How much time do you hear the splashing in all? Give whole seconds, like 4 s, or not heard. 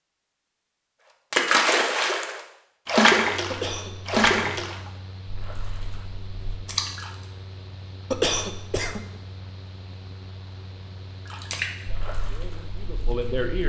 8 s.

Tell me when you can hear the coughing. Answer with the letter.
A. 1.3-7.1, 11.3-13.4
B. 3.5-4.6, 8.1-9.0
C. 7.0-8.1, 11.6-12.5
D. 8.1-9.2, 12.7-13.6
B.